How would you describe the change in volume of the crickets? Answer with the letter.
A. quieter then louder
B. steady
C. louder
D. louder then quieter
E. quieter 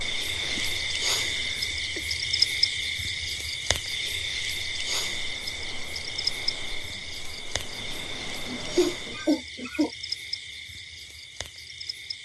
E.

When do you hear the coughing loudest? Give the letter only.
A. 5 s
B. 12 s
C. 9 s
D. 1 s
C.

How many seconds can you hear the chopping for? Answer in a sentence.
The chopping can't be heard in this clip.